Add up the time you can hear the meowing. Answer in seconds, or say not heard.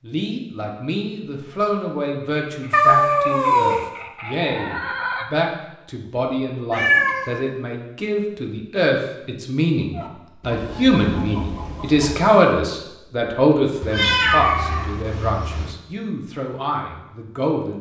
4 s.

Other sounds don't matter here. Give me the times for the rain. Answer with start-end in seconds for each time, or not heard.
not heard.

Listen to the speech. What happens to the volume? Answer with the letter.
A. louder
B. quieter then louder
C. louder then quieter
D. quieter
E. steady
C.